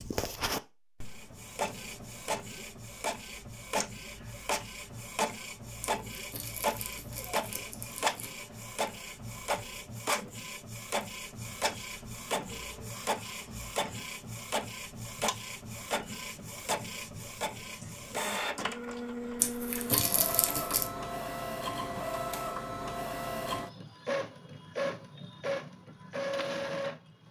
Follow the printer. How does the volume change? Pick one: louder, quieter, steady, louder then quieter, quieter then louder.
steady.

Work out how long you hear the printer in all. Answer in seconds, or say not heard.
27 s.